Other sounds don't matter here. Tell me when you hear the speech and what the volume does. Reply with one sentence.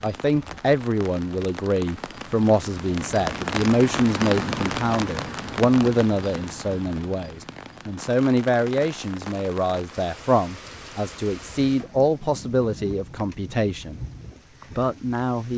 The speech can be heard from 0.0 to 14.0 s, at a steady volume; and briefly from 14.8 to 15.5 s.